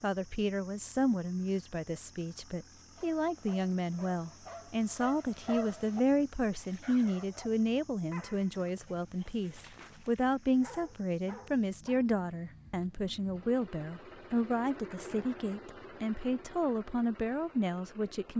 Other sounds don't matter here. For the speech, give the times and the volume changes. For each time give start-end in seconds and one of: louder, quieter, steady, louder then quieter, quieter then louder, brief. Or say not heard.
0.0-18.3 steady.